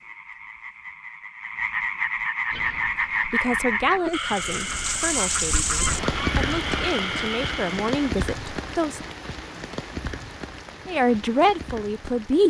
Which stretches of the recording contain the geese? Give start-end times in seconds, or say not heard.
2.5-6.9.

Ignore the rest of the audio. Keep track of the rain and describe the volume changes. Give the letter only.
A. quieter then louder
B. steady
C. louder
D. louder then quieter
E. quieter
E.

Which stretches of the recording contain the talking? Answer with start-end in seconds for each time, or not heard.
3.2-9.0, 10.8-12.4.